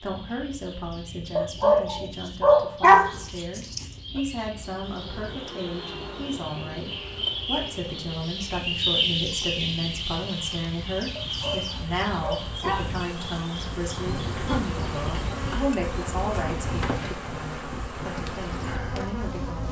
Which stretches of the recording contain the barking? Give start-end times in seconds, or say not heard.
1.4-3.9, 11.2-13.6.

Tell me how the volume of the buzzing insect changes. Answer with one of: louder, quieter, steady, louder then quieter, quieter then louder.
quieter then louder.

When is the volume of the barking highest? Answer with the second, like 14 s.
3 s.